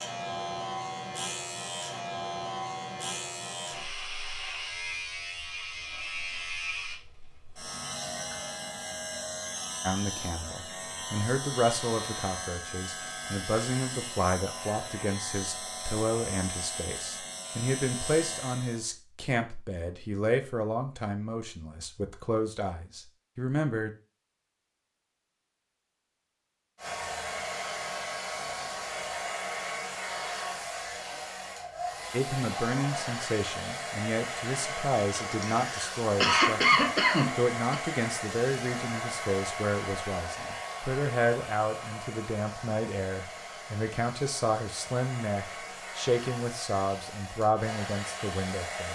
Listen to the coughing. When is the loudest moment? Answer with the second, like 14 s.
37 s.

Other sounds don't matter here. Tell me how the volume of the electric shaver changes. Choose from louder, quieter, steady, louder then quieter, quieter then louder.
steady.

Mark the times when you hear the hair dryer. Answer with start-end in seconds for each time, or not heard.
26.8-48.8.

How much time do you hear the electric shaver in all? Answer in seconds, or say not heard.
19 s.